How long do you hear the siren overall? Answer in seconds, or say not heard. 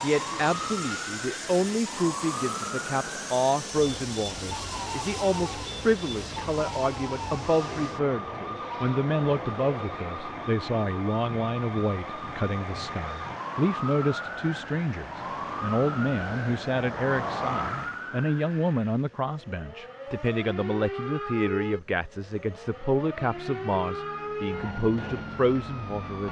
26 s.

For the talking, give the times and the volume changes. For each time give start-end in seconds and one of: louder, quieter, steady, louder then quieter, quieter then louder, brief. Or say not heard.
0.0-26.2 steady.